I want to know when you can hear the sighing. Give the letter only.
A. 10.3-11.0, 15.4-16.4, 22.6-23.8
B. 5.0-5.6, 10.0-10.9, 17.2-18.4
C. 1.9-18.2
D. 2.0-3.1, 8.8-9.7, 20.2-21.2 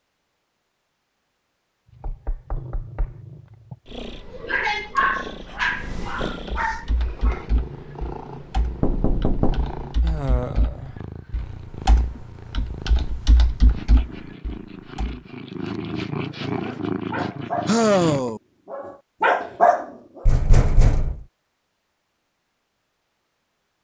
B.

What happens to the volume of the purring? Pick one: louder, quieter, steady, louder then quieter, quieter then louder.
louder.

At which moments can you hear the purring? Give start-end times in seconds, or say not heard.
1.9-18.2.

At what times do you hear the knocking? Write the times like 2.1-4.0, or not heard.
2.0-3.1, 8.8-9.7, 20.2-21.2.